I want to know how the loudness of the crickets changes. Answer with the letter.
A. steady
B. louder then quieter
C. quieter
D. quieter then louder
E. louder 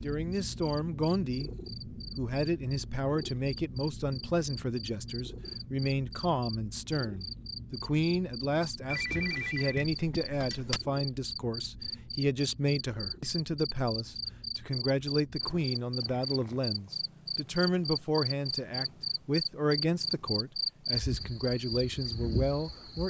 E.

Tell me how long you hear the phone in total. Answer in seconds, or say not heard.
2 s.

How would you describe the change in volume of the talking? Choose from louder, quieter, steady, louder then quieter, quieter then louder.
steady.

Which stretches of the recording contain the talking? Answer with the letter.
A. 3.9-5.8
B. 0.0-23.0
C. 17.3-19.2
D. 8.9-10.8
B.